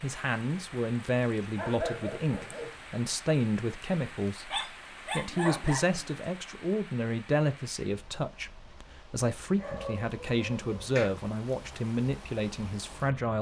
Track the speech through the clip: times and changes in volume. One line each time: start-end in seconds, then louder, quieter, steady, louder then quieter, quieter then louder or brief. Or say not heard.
0.0-13.3 steady.